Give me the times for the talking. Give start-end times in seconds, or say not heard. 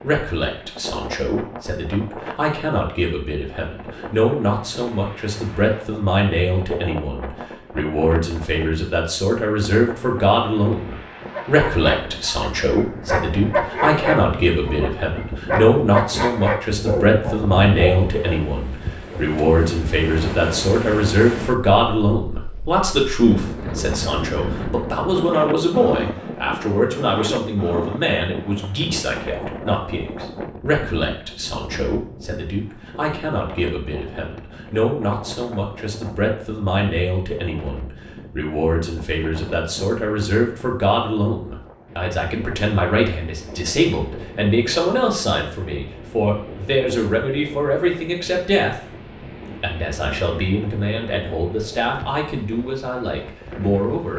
0.0-48.8, 49.6-54.1.